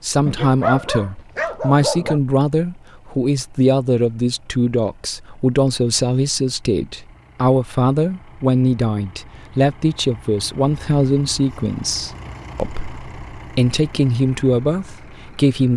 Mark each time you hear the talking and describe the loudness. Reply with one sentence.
You can hear the talking from 0.0 to 15.7 s, at a steady volume.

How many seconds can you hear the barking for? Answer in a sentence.
You can hear the barking for 2 seconds altogether.